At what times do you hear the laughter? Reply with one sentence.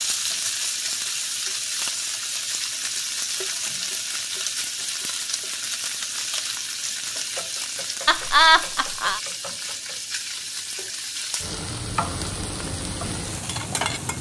The laughter can be heard from 8.1 to 9.2 s.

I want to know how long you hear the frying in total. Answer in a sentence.
You can hear the frying for 14 seconds altogether.